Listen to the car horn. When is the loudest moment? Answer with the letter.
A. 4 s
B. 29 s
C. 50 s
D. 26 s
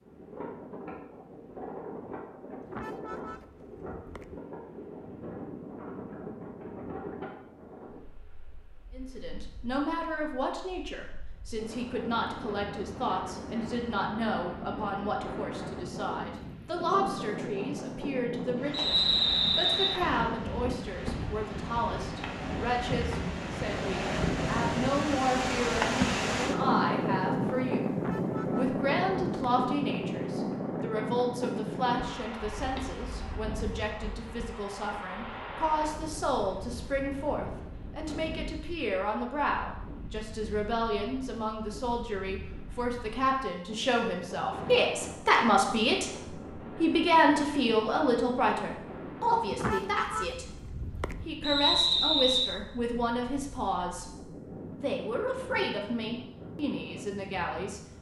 C.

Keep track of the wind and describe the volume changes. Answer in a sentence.
The volume of the wind goes up, then down.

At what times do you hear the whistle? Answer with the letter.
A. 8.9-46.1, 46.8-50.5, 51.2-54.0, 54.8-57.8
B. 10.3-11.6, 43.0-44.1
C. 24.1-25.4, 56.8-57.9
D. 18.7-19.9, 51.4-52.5
D.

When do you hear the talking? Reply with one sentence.
The talking can be heard from 8.9 to 46.1 s, from 46.8 to 50.5 s, from 51.2 to 54.0 s and from 54.8 to 57.8 s.